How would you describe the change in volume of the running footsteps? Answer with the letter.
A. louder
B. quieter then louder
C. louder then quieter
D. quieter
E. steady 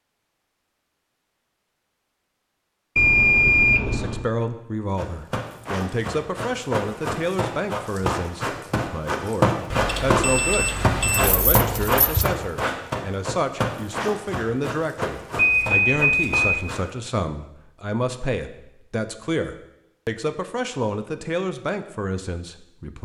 C.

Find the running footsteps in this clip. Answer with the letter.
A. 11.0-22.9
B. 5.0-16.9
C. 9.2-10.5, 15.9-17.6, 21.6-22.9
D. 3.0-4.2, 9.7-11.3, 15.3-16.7
B.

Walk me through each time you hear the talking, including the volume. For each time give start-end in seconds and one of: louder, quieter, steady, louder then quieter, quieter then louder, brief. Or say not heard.
3.8-22.9 steady.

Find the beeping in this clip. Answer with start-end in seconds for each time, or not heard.
3.0-4.2, 9.7-11.3, 15.3-16.7.